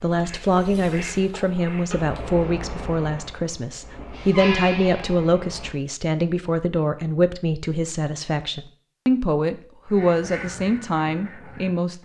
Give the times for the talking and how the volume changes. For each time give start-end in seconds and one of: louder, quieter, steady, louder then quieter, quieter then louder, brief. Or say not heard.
0.0-12.0 steady.